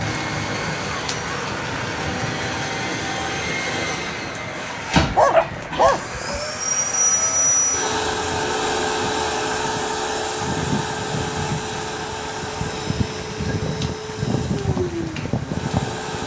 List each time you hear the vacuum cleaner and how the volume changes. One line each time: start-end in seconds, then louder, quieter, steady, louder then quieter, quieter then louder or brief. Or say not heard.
0.0-16.2 louder then quieter.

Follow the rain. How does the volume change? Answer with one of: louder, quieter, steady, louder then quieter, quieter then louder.
quieter then louder.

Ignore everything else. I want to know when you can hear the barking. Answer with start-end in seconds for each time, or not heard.
5.0-6.4.